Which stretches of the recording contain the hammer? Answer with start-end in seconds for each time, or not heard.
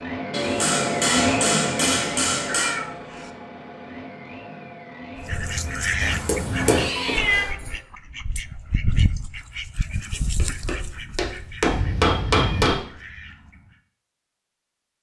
0.3-2.8, 6.2-7.7, 10.2-12.8.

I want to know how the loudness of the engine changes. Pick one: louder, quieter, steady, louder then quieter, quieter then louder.
quieter.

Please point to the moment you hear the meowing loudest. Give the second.
7 s.